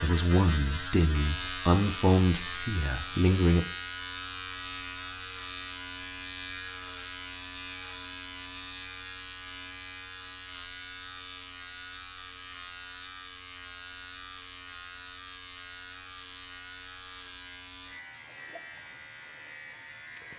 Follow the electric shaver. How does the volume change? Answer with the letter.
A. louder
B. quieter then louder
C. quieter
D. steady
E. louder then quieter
C.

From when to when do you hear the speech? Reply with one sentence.
You can hear the speech from 0.0 to 3.6 s.